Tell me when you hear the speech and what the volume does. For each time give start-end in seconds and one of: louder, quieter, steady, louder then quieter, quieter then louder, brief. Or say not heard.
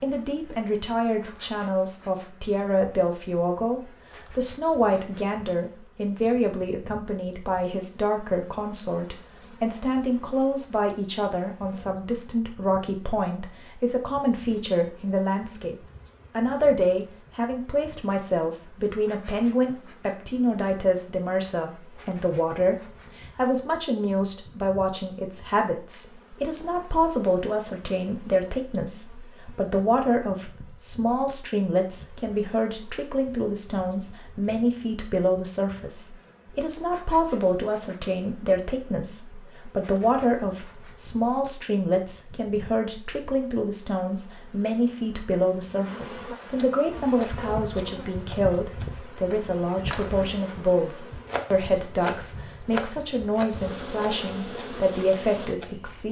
0.0-56.0 steady.